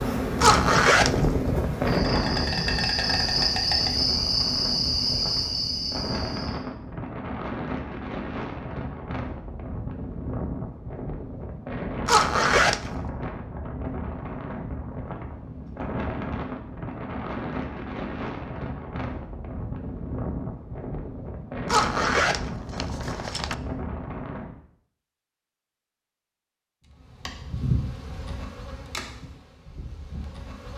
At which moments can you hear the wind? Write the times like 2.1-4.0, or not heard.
0.0-24.6.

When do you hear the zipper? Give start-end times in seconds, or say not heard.
0.4-1.2, 12.1-12.9, 21.6-23.6.